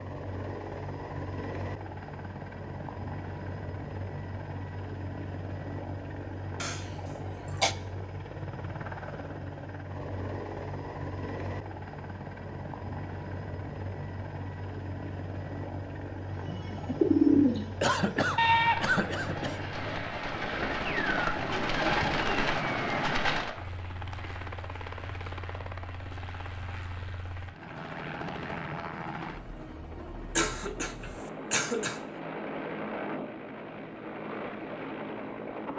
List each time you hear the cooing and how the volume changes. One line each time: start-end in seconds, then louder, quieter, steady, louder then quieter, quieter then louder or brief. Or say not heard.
16.4-23.6 quieter then louder.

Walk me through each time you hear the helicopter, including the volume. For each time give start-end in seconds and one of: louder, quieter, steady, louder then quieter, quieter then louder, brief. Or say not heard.
0.0-35.7 steady.